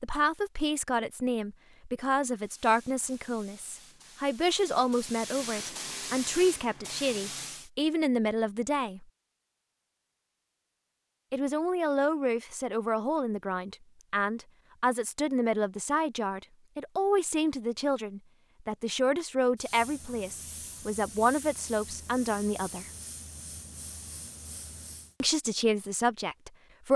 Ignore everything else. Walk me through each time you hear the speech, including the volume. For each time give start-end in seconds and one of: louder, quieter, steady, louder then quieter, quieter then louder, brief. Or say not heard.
0.0-9.1 steady
11.3-22.9 steady
25.2-26.9 brief.